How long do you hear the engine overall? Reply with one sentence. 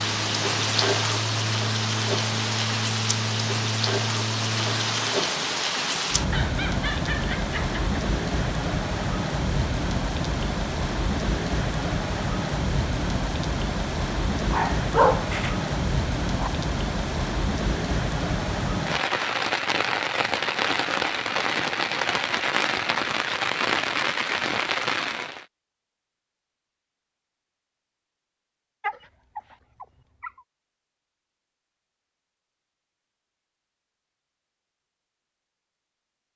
You can hear the engine for 5 seconds altogether.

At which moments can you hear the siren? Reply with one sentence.
The siren can't be heard in this clip.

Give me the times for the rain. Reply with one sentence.
The rain can be heard from 0.0 to 25.4 s.